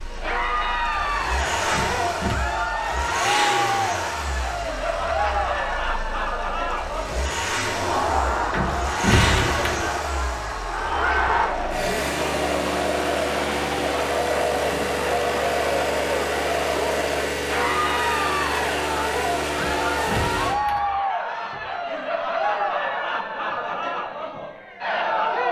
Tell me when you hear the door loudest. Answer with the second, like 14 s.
9 s.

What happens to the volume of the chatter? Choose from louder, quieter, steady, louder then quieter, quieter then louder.
steady.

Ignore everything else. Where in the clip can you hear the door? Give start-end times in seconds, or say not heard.
1.7-2.5, 8.5-9.9, 19.6-21.0.